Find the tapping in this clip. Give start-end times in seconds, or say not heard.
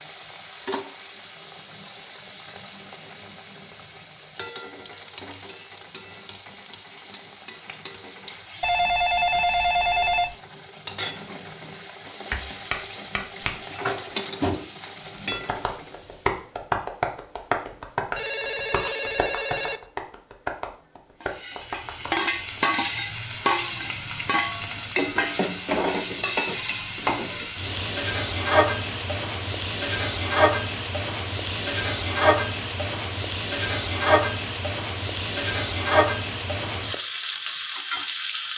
12.3-22.2.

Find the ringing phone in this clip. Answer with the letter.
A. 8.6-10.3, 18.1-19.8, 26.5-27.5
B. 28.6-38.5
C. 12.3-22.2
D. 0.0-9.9
A.